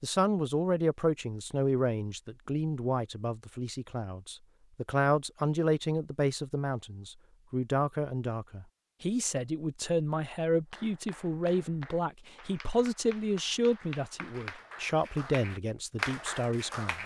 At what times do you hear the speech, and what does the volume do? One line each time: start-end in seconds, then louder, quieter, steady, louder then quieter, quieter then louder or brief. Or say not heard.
0.0-17.0 steady.